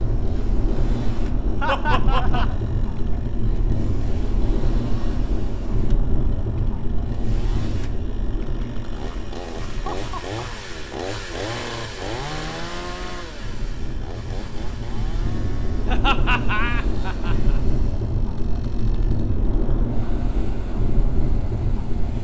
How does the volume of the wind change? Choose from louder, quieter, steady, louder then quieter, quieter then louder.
quieter then louder.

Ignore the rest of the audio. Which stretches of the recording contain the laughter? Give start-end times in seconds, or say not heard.
1.6-2.5, 9.7-10.4, 15.8-17.6.